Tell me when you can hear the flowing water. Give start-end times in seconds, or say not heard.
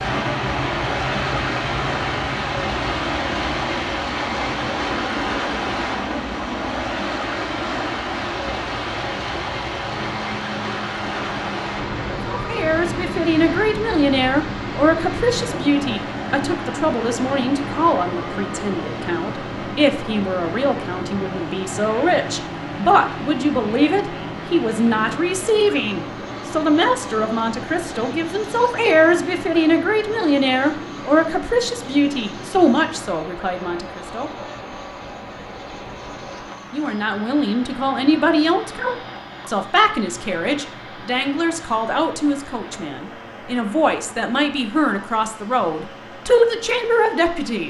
0.0-47.6.